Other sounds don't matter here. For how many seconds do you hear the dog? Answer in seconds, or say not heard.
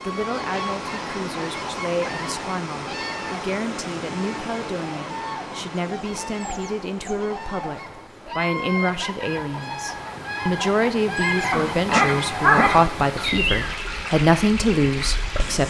2 s.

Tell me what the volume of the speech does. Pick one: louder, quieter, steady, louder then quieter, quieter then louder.
louder.